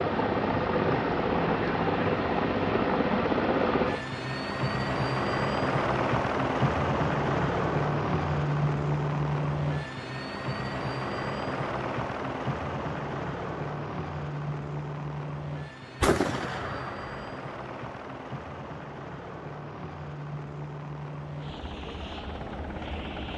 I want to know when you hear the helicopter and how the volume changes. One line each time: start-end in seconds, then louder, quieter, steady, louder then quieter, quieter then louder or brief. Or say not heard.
0.0-23.3 quieter.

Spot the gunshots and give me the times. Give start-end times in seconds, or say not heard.
16.0-17.2.